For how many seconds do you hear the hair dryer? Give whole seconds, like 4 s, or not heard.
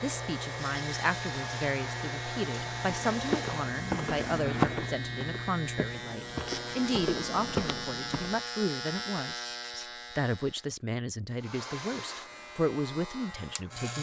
6 s.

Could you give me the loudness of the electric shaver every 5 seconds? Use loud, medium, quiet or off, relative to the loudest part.
loud, loud, medium.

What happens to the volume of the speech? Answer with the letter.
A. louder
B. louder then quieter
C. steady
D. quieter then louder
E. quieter
C.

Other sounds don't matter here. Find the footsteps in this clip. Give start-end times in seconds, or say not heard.
2.6-8.4.